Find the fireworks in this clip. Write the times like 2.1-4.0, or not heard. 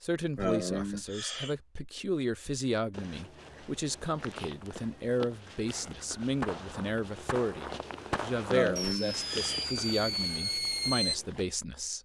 5.7-11.2.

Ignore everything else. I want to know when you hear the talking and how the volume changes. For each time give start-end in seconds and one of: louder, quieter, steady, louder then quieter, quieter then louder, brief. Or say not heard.
0.0-12.0 steady.